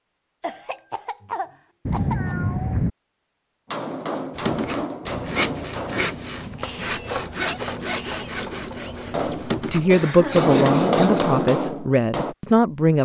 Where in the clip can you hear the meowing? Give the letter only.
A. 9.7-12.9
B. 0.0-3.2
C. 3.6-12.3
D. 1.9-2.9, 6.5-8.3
D.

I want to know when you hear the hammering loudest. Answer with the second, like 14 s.
11 s.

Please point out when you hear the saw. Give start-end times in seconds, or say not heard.
4.3-11.2.